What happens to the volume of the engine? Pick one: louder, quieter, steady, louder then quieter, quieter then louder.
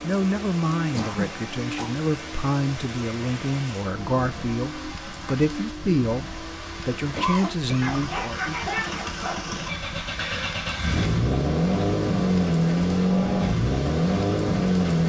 louder.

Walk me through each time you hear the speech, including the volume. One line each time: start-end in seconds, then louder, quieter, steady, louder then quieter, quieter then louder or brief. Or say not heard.
0.0-8.6 steady.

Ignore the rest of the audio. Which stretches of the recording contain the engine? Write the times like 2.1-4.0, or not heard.
0.0-15.0.